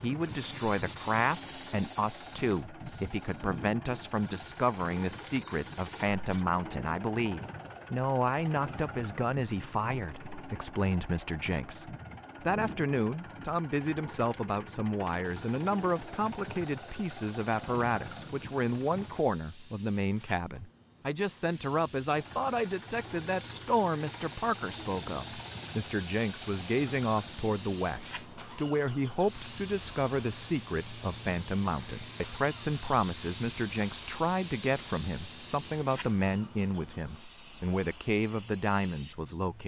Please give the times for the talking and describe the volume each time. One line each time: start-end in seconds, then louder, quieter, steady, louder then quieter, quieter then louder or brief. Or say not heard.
0.0-39.6 steady.